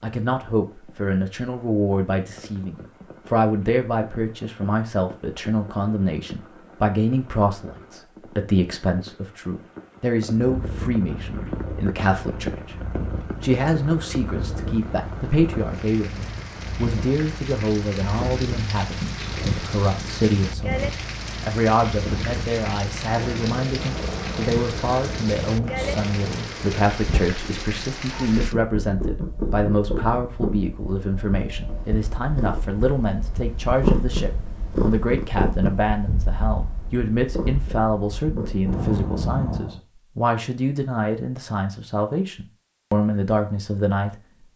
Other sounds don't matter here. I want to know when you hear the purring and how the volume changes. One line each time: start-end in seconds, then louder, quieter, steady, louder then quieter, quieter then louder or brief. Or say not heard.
10.4-39.8 louder.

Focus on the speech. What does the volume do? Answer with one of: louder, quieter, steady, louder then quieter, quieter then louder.
steady.